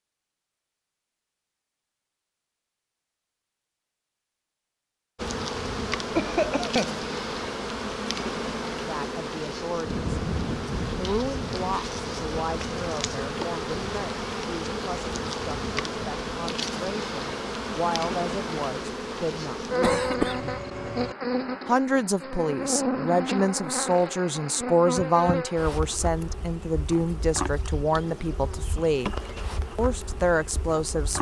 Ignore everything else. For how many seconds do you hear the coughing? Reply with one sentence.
You can hear the coughing for 2 seconds altogether.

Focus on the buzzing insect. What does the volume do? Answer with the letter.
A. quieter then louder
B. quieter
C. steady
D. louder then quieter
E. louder
B.